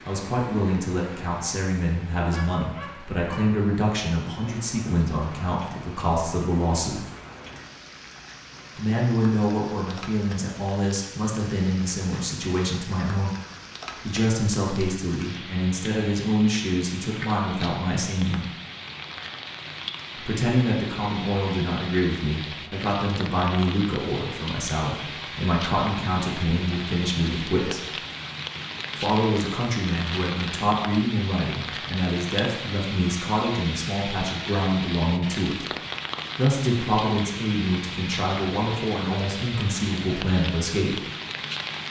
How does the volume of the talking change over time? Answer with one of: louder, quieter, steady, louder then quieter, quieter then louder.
steady.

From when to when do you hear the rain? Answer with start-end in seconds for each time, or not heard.
0.0-41.8.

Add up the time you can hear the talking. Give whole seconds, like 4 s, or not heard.
35 s.